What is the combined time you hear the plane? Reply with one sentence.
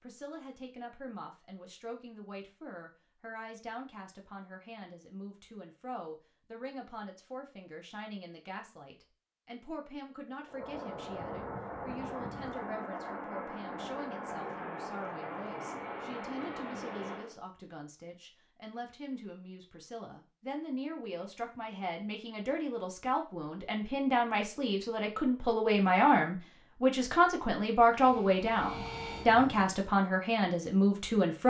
The plane can be heard for 9 seconds in total.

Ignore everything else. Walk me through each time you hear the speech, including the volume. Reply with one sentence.
You can hear the speech from 0.0 to 31.4 s, getting louder.